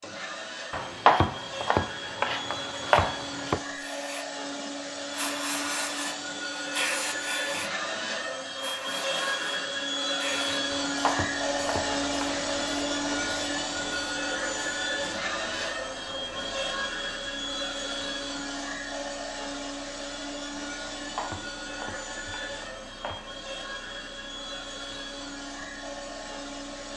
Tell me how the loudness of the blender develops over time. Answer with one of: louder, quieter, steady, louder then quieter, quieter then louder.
louder then quieter.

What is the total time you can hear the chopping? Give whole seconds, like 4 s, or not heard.
7 s.